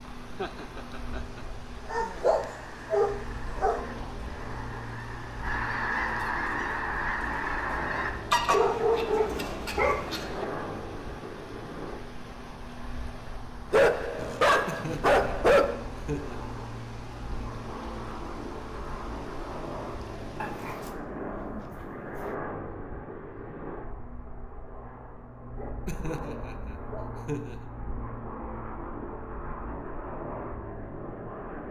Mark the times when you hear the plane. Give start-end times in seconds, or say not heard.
0.0-31.6.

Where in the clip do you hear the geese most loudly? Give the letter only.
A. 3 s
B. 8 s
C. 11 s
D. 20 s
B.